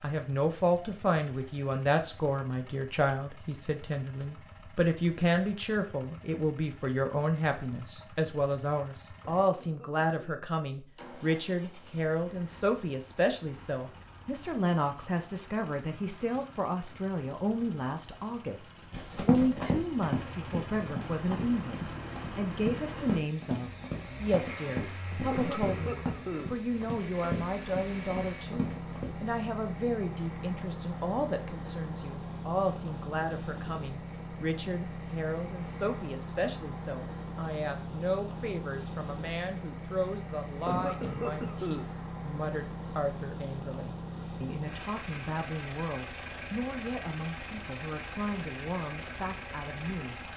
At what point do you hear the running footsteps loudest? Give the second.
19 s.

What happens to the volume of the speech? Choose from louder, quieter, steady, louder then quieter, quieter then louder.
quieter.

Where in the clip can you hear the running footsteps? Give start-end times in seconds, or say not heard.
18.9-29.1.